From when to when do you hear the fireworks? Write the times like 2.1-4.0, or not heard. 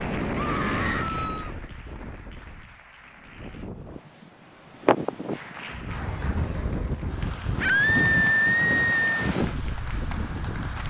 not heard.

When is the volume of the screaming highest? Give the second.
8 s.